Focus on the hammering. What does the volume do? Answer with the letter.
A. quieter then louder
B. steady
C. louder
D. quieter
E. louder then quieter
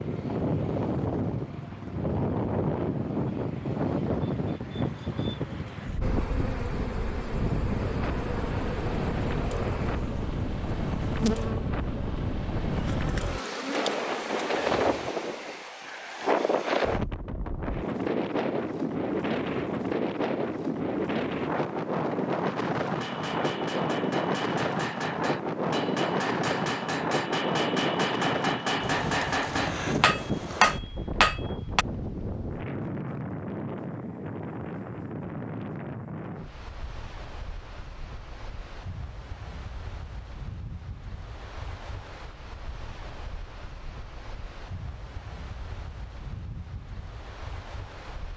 C.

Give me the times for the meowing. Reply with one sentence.
You can't hear the meowing here.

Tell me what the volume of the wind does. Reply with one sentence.
The volume of the wind goes down.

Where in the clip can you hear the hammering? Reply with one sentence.
The hammering can be heard from 22.9 to 31.9 s.